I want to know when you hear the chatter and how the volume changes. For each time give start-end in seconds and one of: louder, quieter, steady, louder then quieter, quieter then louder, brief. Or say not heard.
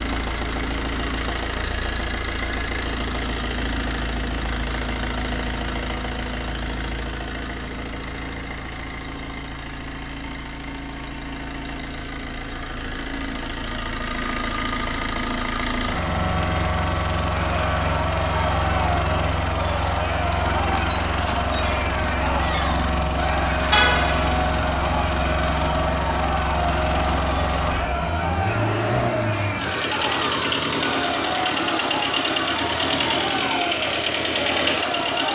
17.2-35.3 steady.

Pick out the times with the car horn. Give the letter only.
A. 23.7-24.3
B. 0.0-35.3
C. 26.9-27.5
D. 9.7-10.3
A.